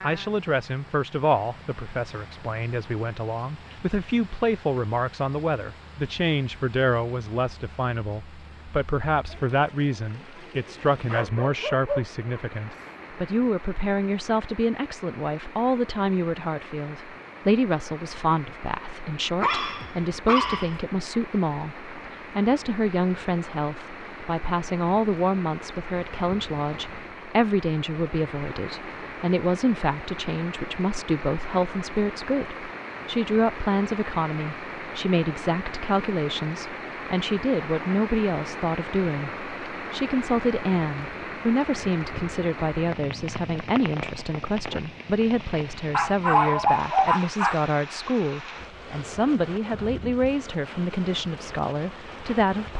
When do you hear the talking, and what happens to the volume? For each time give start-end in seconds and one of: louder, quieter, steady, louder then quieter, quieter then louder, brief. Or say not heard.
0.0-52.7 steady.